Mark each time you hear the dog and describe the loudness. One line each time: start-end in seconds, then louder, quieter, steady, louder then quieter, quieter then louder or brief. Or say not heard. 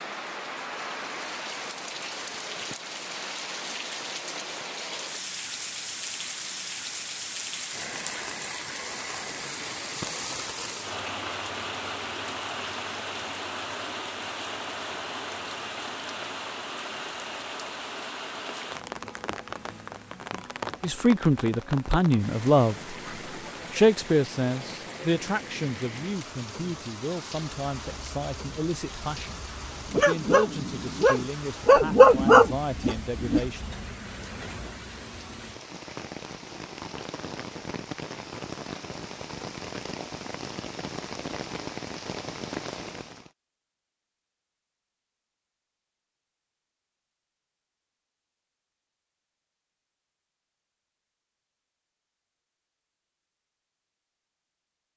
27.9-33.4 louder.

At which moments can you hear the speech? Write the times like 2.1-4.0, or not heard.
20.8-22.9, 23.7-33.6.